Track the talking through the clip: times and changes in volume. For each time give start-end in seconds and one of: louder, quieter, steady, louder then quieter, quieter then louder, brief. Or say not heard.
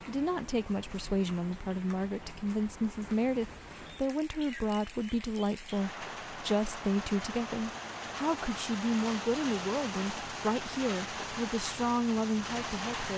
0.0-13.1 steady.